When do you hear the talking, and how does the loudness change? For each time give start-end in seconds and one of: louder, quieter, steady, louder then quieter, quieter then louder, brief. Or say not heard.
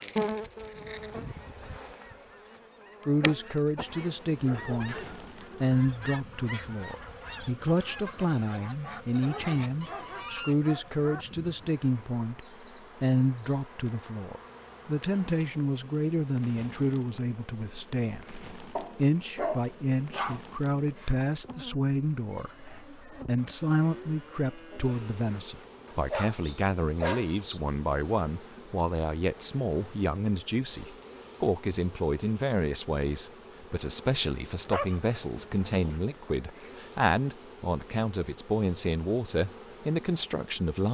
3.0-5.0 brief
5.6-40.8 steady.